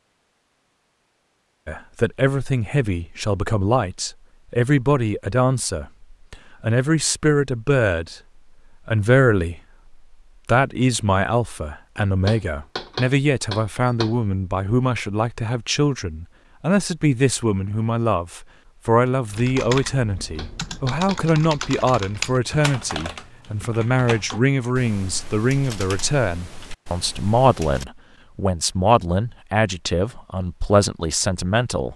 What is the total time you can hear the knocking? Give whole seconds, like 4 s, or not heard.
3 s.